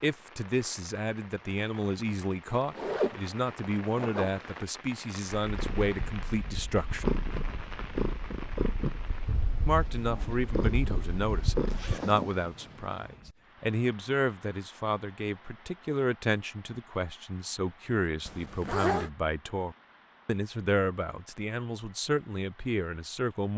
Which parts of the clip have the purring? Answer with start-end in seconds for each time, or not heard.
5.3-12.3.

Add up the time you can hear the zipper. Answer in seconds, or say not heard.
4 s.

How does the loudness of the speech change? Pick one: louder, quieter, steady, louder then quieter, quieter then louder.
steady.